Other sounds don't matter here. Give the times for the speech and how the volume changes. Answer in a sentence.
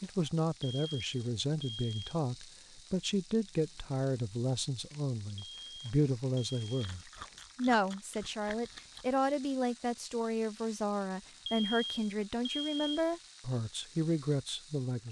You can hear the speech from 0.0 to 15.0 s, at a steady volume.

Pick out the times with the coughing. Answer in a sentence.
The coughing can't be heard in this clip.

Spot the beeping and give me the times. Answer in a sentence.
You can hear the beeping from 0.6 to 2.1 s, from 5.3 to 6.8 s and from 11.4 to 13.1 s.